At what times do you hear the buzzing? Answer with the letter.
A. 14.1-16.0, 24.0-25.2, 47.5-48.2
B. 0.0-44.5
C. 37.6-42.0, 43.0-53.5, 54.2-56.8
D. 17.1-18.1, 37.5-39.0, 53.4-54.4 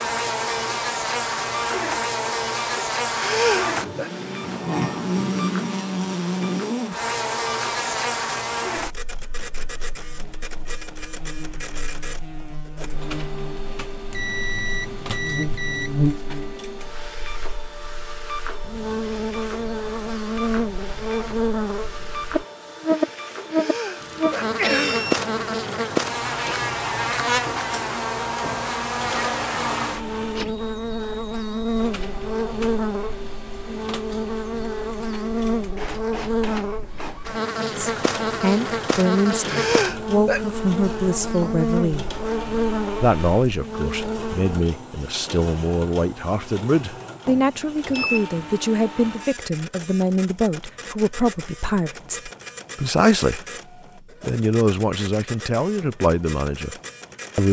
B.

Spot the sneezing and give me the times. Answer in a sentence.
The sneezing can be heard from 3.1 to 4.1 s, from 23.5 to 25.1 s and from 39.5 to 40.4 s.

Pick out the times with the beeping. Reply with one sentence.
You can hear the beeping from 14.1 to 16.0 s, from 24.0 to 25.2 s and from 47.5 to 48.2 s.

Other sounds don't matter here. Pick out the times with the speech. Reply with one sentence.
The speech can be heard from 37.6 to 42.0 s, from 43.0 to 53.5 s and from 54.2 to 56.8 s.